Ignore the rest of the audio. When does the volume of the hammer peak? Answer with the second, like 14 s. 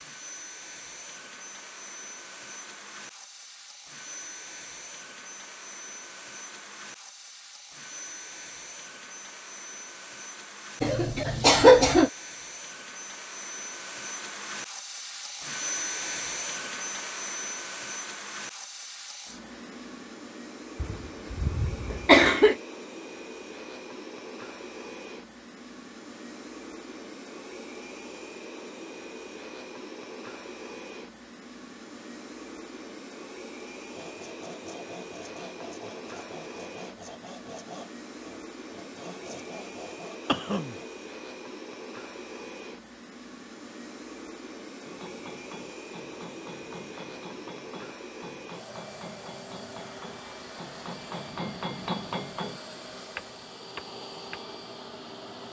52 s.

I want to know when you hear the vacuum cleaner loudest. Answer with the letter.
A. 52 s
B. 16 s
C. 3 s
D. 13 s
B.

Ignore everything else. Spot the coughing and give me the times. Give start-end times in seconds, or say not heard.
10.8-12.1, 20.8-22.6, 40.2-40.8.